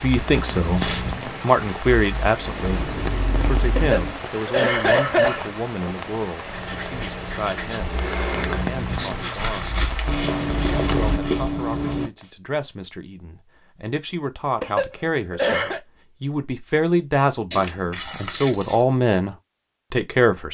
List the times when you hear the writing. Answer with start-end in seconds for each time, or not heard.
6.5-12.3.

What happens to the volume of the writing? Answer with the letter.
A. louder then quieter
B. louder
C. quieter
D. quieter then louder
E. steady
B.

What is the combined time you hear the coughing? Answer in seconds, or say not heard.
3 s.